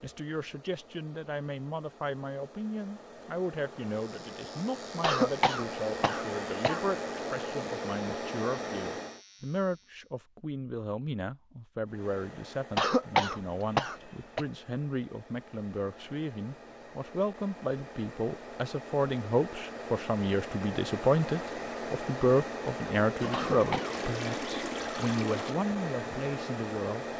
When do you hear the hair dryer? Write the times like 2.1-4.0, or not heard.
0.0-9.2, 11.8-27.1.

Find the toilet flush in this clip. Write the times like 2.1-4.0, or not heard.
23.1-25.6.